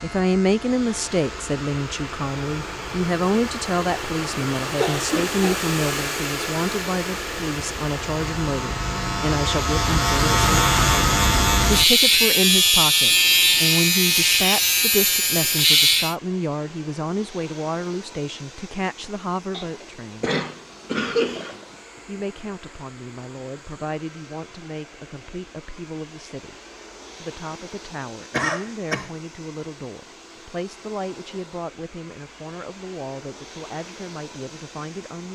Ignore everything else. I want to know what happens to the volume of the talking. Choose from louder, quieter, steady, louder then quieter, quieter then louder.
quieter.